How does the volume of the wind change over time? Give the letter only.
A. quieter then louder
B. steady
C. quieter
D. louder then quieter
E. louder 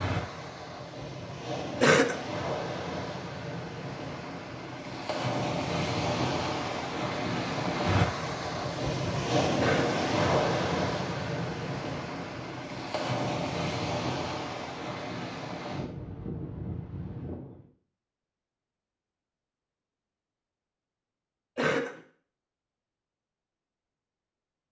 D.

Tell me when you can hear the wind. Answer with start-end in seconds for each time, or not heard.
0.0-17.6.